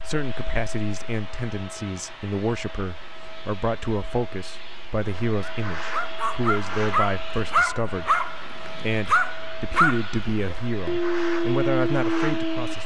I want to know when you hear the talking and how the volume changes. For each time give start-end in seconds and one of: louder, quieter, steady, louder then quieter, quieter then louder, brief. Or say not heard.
0.0-12.8 steady.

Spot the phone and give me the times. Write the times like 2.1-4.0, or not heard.
not heard.